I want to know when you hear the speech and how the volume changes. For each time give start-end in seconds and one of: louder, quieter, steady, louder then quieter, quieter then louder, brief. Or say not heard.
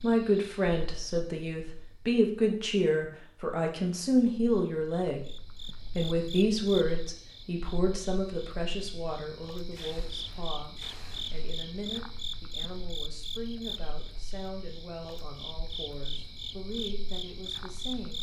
0.0-18.1 quieter.